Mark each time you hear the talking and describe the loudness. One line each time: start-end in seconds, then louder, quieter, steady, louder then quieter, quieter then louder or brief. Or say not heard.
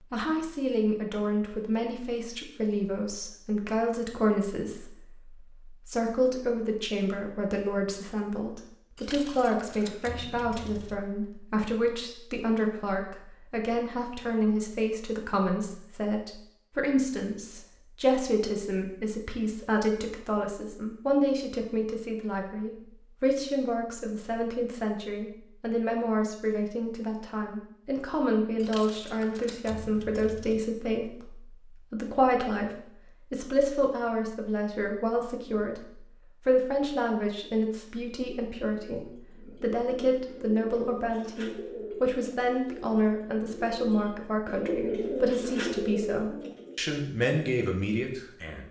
0.1-48.6 steady.